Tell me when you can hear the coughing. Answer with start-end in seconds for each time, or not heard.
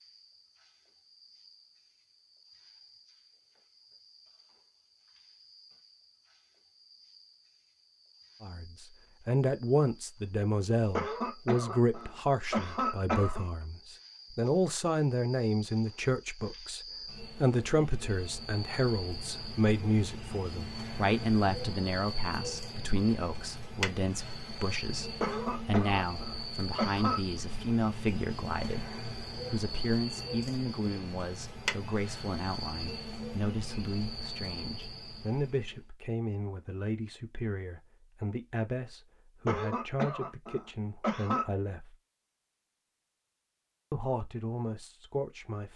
10.9-13.4, 25.2-27.2, 39.5-41.5.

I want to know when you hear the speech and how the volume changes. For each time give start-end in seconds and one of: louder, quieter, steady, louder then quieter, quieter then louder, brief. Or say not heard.
8.4-42.0 quieter
43.9-45.7 brief.